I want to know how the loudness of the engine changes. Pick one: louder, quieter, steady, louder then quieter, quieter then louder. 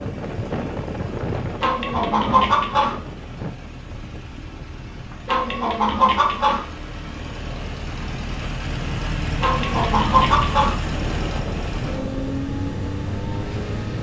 louder.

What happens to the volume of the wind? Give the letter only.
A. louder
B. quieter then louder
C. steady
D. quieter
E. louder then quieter
B.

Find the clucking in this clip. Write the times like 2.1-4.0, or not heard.
1.6-3.0, 5.2-6.7, 9.4-10.8.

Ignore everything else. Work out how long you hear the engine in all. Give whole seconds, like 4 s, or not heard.
14 s.